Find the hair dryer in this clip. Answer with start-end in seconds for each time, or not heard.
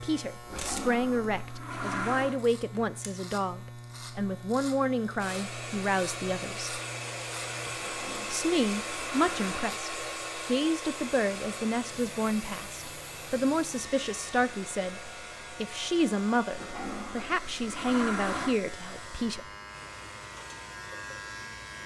5.2-21.8.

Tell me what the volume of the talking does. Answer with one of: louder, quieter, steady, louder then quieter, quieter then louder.
steady.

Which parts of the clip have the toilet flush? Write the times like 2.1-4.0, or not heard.
0.4-2.4, 7.7-9.7, 16.5-18.6.